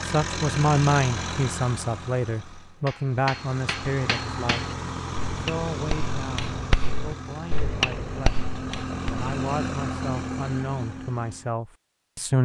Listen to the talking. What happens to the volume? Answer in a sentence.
The volume of the talking goes down, then up.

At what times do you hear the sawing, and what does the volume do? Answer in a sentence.
The sawing can't be heard in this clip.